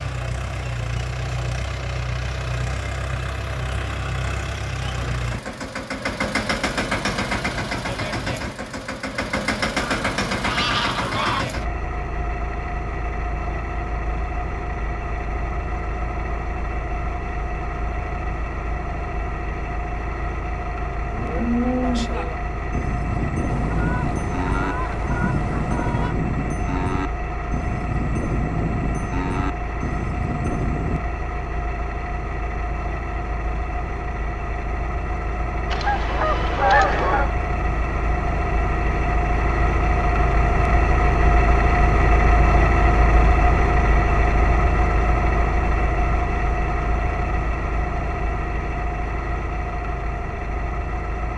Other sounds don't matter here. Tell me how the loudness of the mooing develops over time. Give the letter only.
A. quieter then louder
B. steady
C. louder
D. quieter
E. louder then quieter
B.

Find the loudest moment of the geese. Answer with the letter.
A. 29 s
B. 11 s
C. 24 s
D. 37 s
D.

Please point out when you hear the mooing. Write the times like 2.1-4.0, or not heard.
21.1-31.0.